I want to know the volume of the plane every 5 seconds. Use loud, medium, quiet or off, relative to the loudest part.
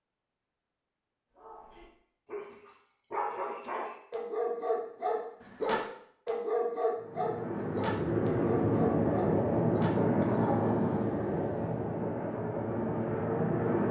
off, loud, loud.